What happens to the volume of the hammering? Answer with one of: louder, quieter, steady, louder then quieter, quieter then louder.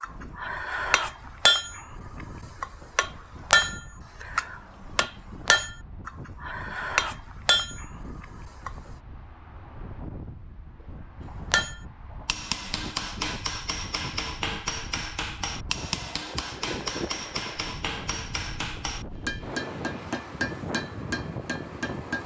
quieter.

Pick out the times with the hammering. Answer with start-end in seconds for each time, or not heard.
0.0-8.9, 11.5-22.2.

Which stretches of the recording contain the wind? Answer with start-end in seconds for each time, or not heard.
0.0-22.2.